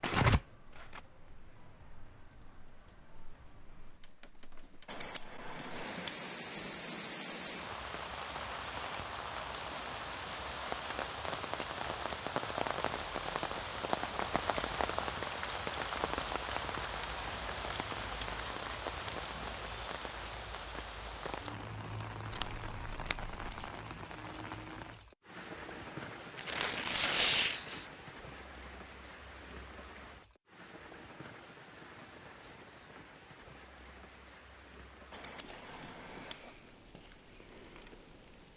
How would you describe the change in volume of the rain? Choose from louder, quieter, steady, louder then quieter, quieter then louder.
louder then quieter.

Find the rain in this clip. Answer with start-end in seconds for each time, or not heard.
0.2-38.5.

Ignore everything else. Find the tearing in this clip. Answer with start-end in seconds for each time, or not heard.
0.0-1.0, 22.3-23.7, 26.4-27.9.